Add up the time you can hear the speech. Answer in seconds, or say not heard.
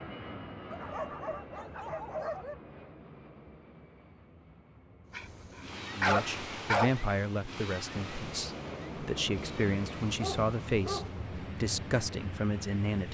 7 s.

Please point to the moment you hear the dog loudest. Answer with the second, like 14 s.
6 s.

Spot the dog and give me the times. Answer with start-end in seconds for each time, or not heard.
0.7-2.5, 5.1-7.0, 10.2-11.1.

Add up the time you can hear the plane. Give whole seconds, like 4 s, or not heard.
13 s.